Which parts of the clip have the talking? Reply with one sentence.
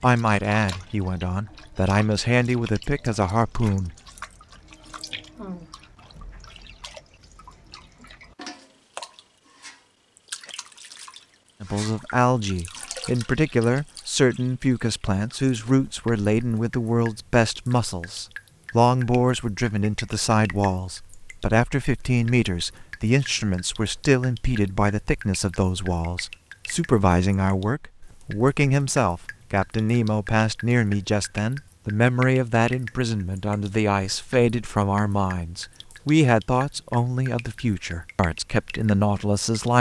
The talking can be heard from 0.0 to 3.9 s and from 11.6 to 39.7 s.